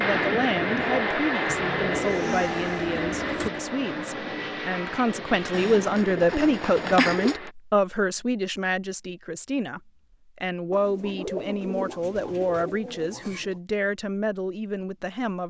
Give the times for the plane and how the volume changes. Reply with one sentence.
The plane can be heard from 0.0 to 7.5 s, getting quieter.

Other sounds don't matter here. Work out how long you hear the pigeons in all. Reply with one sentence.
You can hear the pigeons for 7 seconds altogether.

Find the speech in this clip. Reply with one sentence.
The speech can be heard from 0.0 to 15.4 s.